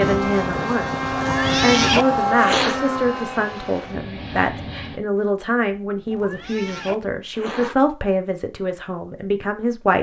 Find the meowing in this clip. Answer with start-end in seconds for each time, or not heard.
1.1-2.8, 6.0-7.8.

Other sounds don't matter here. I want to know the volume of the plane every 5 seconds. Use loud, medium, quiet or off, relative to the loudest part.
loud, off.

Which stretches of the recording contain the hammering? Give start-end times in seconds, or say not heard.
not heard.